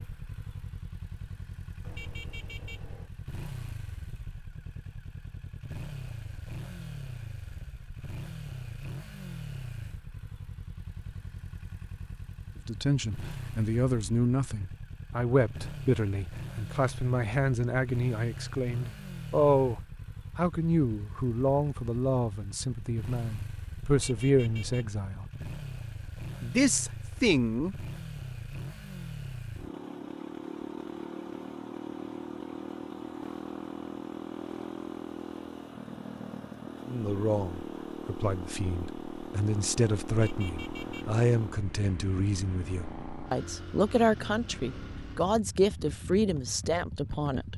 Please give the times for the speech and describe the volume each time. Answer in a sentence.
You can hear the speech from 12.7 to 25.2 s, at a steady volume; briefly from 26.4 to 27.8 s; and from 36.9 to 47.5 s, getting louder.